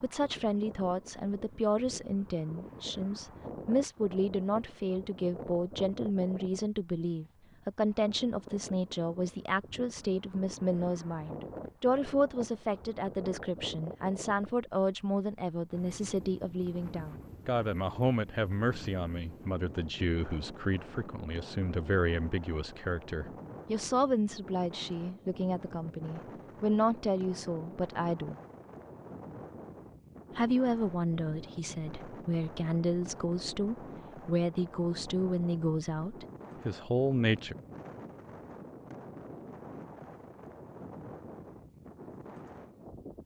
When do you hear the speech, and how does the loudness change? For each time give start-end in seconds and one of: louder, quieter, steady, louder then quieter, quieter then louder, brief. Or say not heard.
0.0-28.4 steady
30.4-37.5 steady.